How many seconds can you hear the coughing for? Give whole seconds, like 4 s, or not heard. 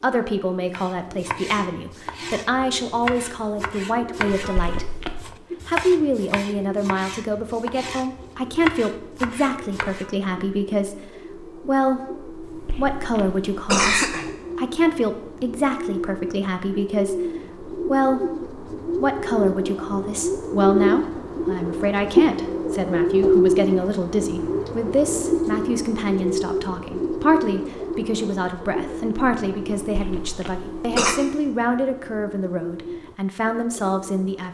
4 s.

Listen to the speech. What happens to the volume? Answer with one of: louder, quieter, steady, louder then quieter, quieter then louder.
steady.